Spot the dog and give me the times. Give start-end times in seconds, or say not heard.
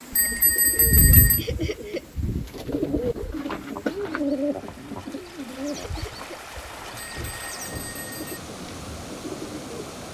not heard.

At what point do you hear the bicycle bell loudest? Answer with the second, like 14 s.
1 s.